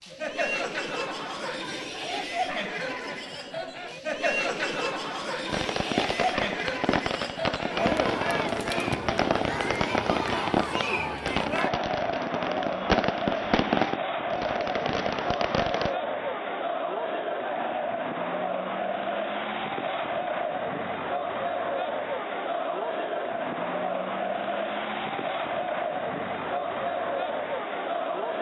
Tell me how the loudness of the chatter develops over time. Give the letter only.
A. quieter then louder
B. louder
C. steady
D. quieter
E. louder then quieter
C.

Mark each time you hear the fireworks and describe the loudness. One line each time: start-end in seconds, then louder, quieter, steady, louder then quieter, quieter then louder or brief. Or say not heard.
5.5-15.9 steady.